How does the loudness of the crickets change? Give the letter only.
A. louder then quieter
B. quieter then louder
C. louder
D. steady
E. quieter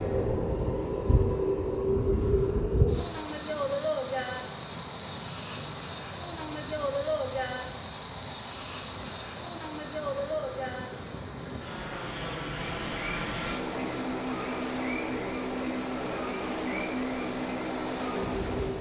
E.